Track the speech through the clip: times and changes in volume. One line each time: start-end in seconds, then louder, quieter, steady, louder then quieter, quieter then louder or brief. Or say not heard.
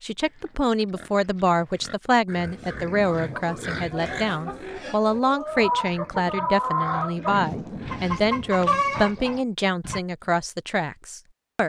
0.0-11.6 steady.